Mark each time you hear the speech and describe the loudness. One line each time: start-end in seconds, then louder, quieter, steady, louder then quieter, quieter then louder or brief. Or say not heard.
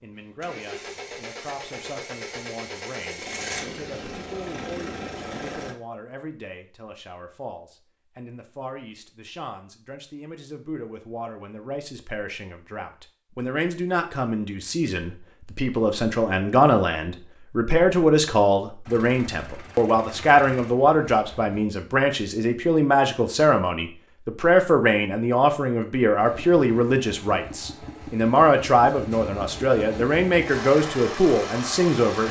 0.0-32.2 louder.